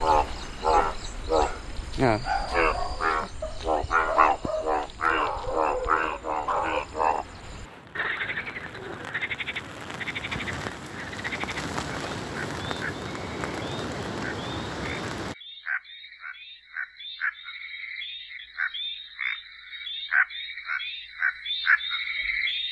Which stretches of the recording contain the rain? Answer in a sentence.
You can hear the rain from 0.0 to 15.3 s.